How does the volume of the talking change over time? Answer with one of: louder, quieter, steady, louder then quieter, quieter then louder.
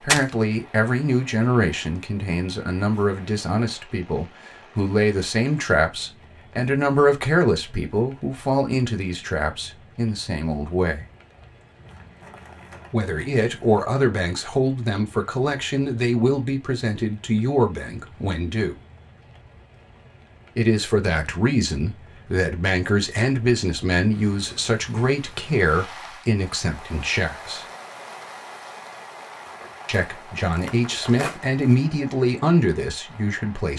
steady.